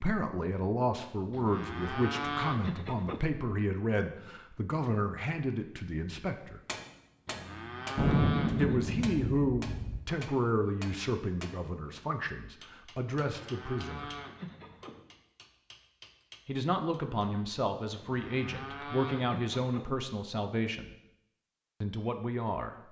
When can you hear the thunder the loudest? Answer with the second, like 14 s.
8 s.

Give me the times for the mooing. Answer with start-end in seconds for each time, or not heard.
1.3-3.3, 7.2-8.8, 13.2-15.0, 17.9-19.9.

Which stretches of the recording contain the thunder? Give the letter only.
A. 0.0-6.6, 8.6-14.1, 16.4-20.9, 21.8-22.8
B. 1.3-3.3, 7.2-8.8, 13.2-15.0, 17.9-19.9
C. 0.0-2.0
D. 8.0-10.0
D.